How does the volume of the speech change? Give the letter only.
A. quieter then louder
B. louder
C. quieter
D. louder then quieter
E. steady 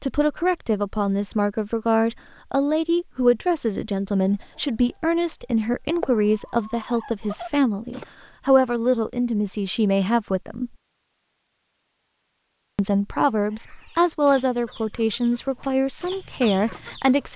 E.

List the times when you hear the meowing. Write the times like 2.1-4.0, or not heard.
not heard.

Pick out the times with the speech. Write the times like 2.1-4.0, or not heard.
0.0-10.7, 12.8-17.3.